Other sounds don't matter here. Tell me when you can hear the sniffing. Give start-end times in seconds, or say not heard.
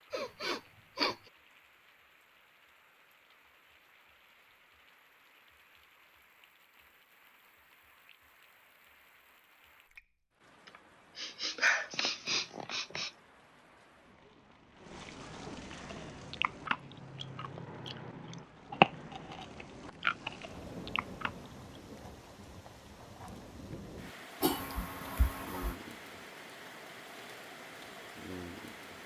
0.1-1.1, 10.7-13.1, 24.4-25.8.